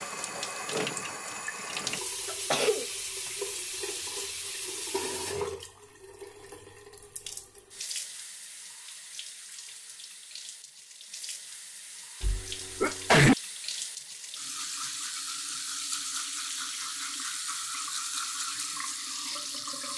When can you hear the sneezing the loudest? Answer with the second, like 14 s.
13 s.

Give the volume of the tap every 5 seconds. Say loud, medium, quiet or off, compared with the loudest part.
loud, medium, medium, loud.